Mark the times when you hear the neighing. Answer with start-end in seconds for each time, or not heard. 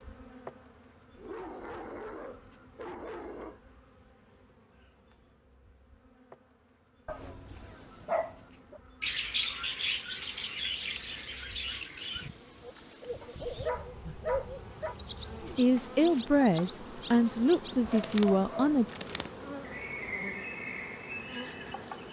not heard.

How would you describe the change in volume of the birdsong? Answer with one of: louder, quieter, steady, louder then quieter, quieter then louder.
quieter.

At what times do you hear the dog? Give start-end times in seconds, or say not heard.
1.1-3.6, 7.0-8.8, 13.2-14.9, 17.9-18.8.